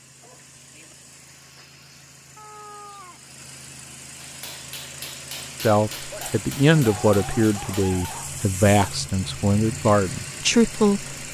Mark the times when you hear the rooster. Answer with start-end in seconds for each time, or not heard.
2.4-3.2.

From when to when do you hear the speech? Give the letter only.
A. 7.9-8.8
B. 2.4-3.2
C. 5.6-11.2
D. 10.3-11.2
C.